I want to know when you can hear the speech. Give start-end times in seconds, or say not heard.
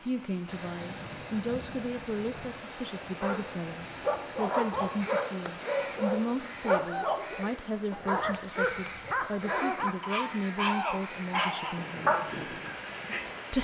0.0-12.5.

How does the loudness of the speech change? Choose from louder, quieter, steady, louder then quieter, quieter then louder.
steady.